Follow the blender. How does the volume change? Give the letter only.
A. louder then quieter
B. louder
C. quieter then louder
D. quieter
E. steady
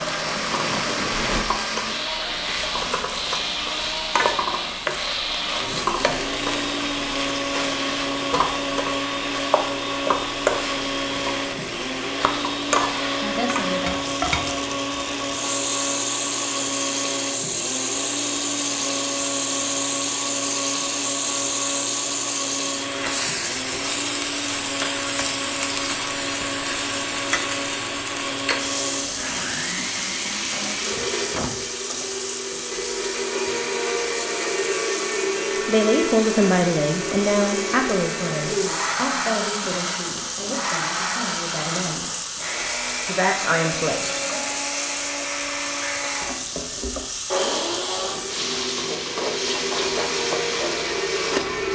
E.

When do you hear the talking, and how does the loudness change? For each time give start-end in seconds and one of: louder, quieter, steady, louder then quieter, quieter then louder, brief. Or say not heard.
35.6-42.0 quieter
43.0-44.2 brief.